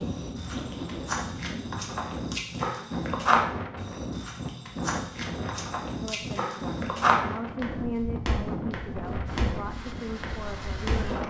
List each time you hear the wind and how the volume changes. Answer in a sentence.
You can hear the wind from 0.0 to 11.2 s, at a steady volume.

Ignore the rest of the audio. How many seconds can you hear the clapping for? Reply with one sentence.
The clapping can't be heard in this clip.